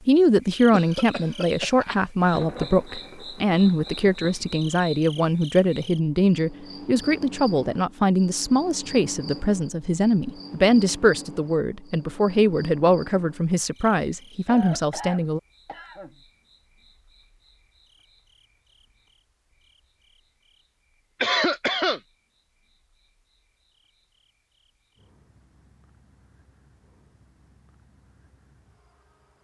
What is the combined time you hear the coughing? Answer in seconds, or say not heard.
4 s.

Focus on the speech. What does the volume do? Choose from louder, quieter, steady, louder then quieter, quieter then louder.
steady.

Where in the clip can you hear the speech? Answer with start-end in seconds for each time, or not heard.
0.1-15.4.